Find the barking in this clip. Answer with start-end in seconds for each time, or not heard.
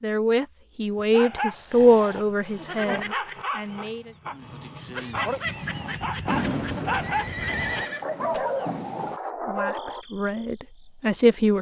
0.9-10.1.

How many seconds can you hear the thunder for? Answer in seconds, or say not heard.
3 s.